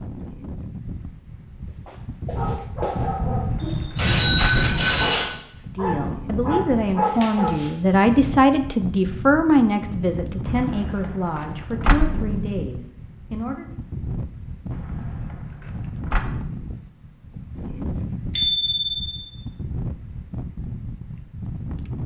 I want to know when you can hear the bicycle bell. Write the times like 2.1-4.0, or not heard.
3.6-5.3, 18.4-19.2.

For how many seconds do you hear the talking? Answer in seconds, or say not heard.
8 s.